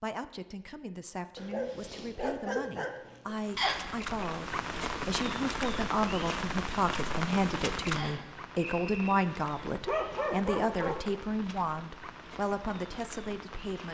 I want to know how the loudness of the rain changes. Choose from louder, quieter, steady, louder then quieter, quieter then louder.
quieter.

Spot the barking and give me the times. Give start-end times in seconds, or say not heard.
1.4-3.4, 9.7-11.1.